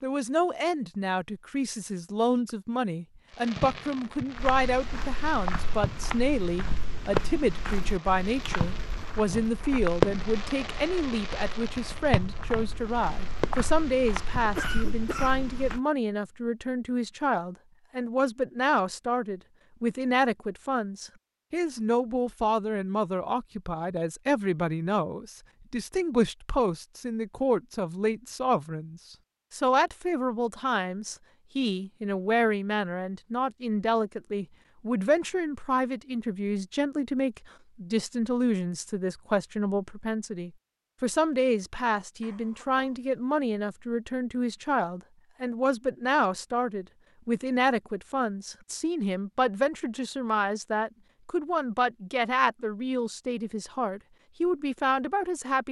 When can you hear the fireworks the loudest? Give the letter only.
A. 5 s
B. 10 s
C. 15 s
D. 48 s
B.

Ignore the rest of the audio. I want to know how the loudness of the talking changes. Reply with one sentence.
The loudness of the talking stays about the same.